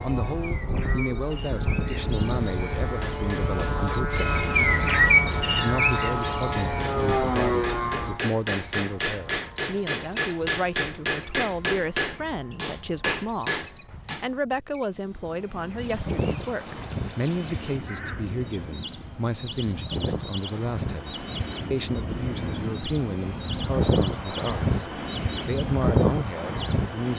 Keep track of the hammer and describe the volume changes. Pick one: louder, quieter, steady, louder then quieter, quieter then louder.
louder.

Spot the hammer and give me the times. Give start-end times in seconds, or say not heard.
2.9-14.3.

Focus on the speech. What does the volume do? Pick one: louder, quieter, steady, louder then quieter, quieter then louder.
steady.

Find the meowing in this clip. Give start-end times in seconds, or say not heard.
not heard.